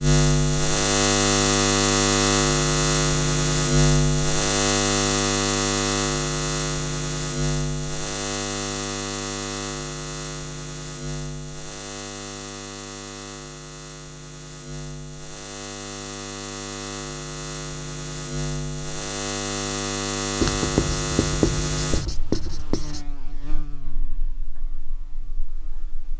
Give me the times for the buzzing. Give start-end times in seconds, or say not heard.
0.0-26.1.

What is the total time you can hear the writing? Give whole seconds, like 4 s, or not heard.
3 s.